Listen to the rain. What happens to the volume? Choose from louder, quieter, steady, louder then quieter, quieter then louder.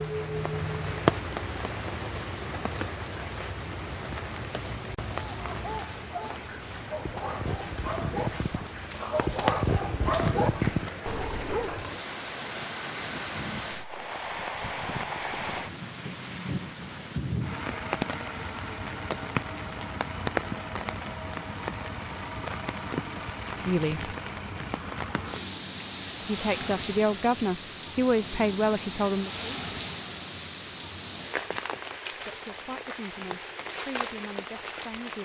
steady.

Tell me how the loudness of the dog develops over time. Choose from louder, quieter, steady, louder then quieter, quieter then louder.
louder.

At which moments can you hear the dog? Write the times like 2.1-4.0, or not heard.
5.2-11.8.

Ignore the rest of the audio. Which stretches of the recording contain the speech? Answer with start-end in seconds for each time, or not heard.
23.4-24.1, 26.2-29.5, 32.1-35.2.